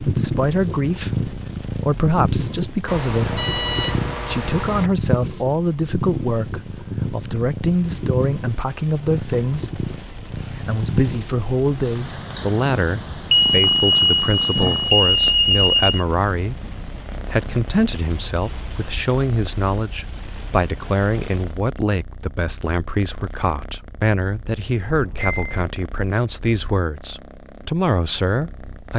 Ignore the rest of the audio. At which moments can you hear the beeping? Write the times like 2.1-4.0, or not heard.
2.9-4.9, 13.3-16.1, 24.9-25.7.